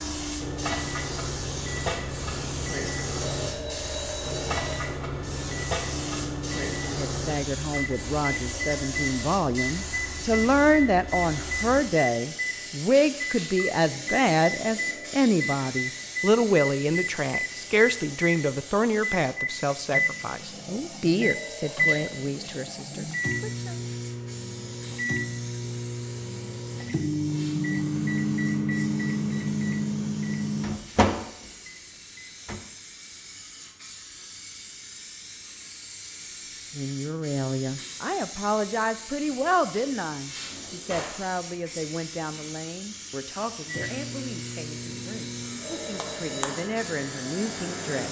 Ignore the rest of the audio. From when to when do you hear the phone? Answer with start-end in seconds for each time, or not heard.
3.1-4.8, 21.1-22.1, 45.6-46.5.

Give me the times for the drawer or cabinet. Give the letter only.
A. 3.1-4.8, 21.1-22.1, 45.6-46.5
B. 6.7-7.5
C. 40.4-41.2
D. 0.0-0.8
C.